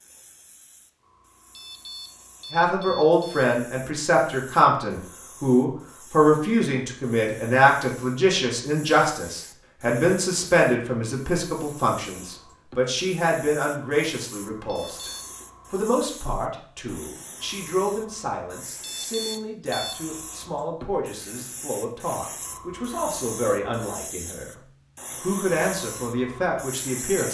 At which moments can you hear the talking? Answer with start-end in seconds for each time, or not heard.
2.5-15.1, 15.7-24.5, 25.1-27.3.